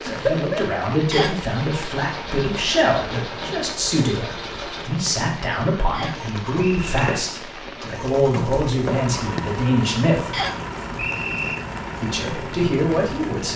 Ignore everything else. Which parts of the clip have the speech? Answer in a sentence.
The speech can be heard from 0.0 to 10.3 s and from 12.0 to 13.5 s.